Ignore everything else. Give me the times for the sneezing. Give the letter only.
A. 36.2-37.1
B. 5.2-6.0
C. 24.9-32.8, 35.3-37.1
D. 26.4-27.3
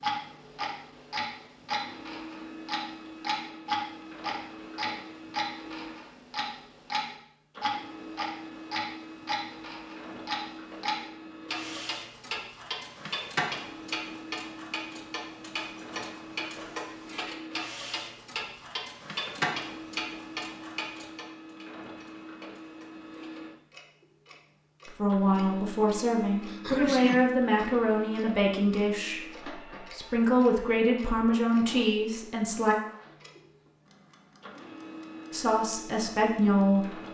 D.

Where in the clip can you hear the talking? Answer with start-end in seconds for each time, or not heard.
24.9-32.8, 35.3-37.1.